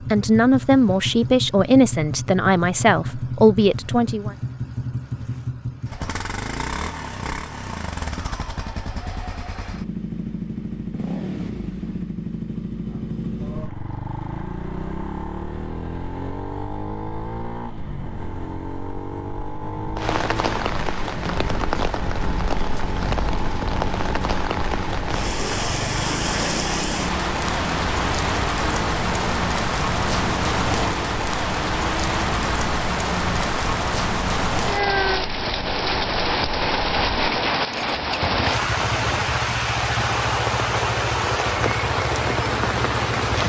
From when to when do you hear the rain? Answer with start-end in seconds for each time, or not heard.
19.9-43.4.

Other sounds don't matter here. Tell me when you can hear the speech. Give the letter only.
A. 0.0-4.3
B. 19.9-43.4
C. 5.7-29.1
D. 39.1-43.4
A.